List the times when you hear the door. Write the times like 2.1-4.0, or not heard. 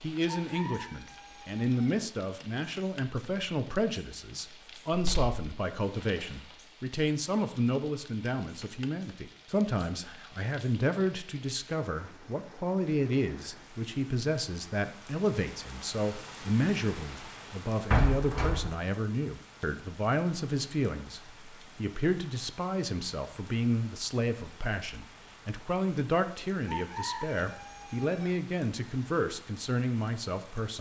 4.9-5.4, 17.9-18.7.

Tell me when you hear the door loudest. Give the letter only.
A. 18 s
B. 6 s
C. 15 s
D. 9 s
A.